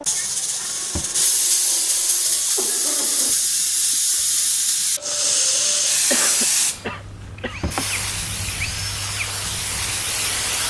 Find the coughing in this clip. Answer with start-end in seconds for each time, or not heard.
2.2-3.4, 6.1-7.7.